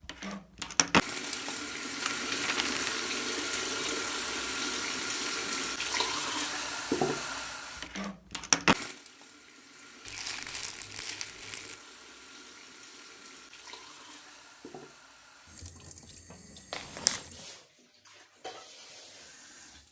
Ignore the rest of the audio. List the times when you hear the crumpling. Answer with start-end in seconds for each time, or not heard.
2.0-3.1, 10.1-11.8, 16.7-17.2.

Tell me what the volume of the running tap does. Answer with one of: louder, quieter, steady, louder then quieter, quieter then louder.
quieter.